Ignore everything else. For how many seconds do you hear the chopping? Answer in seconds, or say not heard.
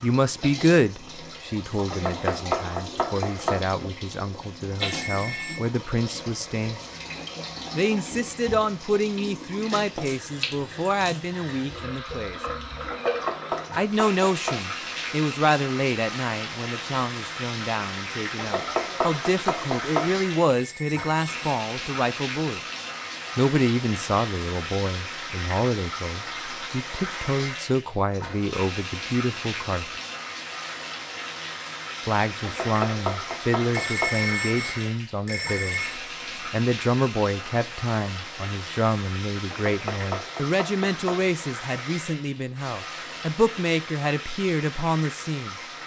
9 s.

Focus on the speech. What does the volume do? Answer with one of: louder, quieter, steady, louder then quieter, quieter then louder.
steady.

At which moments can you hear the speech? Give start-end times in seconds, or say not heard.
0.0-6.8, 7.8-12.4, 13.8-22.6, 23.4-29.9, 32.0-45.5.